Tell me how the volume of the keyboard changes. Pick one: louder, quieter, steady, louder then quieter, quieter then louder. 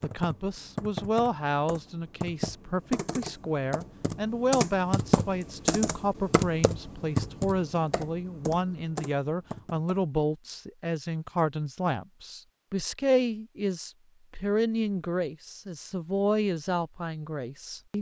louder then quieter.